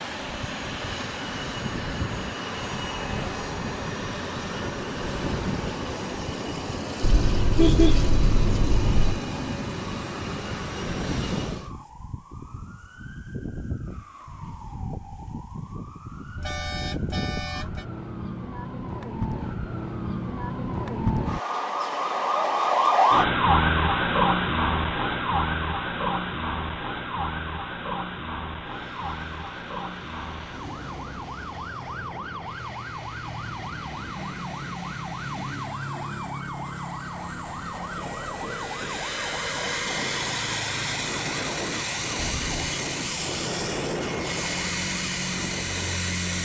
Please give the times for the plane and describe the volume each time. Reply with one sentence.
The plane can be heard from 0.0 to 11.8 s, at a steady volume; and from 28.6 to 46.3 s, getting louder.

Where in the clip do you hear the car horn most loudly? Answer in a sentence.
The volume of the car horn peaks at 8 seconds.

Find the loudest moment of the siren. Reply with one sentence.
The volume of the siren peaks at 23 seconds.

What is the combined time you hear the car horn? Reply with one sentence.
You can hear the car horn for 4 seconds altogether.